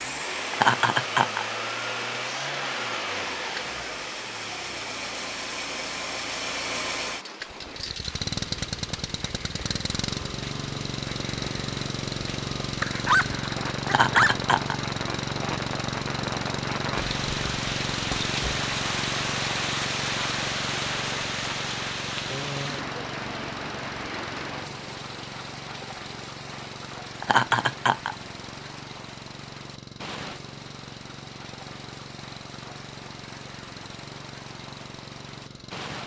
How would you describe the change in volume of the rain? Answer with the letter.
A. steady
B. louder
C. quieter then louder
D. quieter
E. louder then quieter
E.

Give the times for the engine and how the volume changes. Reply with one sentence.
You can hear the engine from 0.0 to 36.0 s, getting quieter.